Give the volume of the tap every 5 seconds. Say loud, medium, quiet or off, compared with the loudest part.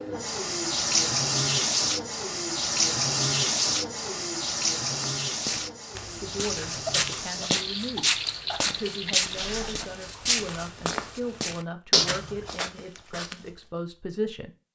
loud, medium, off.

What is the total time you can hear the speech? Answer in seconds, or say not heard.
8 s.